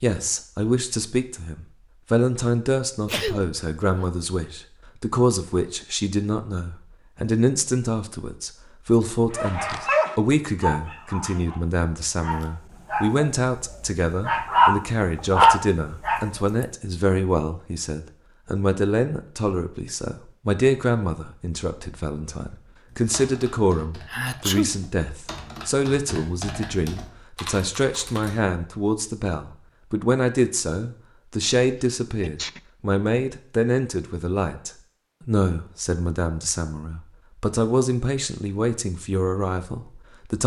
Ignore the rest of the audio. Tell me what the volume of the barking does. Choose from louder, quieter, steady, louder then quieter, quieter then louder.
quieter then louder.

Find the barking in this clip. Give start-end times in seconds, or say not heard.
9.3-16.6.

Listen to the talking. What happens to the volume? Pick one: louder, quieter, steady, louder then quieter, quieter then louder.
steady.